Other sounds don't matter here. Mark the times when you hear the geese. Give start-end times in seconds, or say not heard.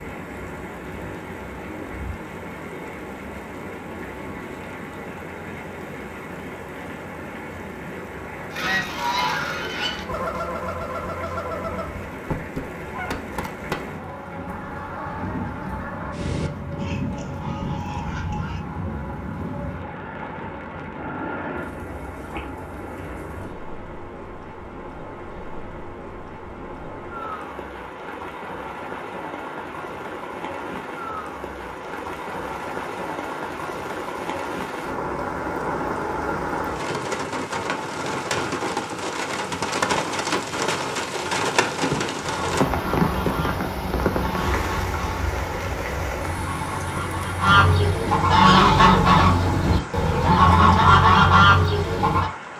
8.5-18.6, 42.2-52.3.